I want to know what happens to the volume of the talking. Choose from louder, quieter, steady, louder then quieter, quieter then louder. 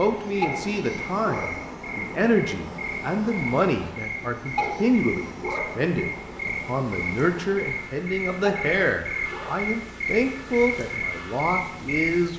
steady.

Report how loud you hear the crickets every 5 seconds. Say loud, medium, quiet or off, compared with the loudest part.
medium, loud, loud.